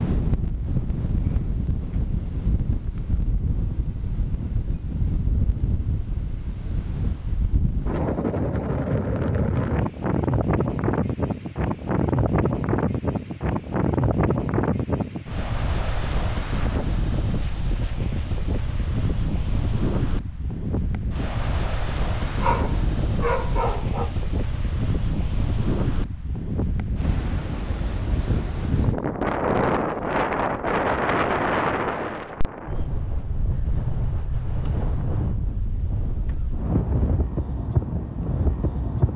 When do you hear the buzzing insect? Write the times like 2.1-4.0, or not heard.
not heard.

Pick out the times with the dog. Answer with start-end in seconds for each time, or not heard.
22.2-24.1.